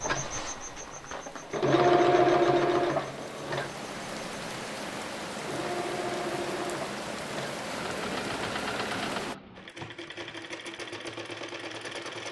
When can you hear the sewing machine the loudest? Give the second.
2 s.